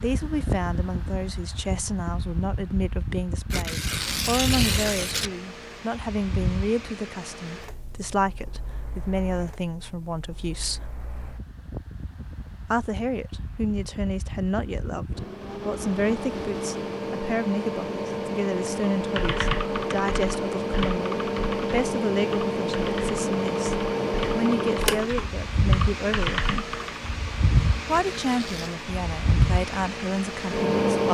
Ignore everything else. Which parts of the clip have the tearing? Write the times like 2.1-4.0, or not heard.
3.5-5.3, 28.1-28.7.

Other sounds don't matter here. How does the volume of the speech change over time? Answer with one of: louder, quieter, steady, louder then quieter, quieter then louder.
steady.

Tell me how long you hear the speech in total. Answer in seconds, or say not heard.
28 s.